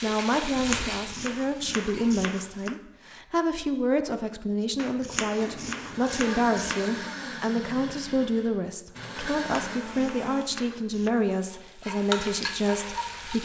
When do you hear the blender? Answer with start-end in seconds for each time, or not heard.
5.4-10.4.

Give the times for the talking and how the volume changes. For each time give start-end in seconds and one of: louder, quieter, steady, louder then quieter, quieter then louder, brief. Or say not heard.
0.0-13.4 steady.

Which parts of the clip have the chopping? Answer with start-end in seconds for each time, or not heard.
0.3-2.8, 4.8-7.0, 9.3-11.1.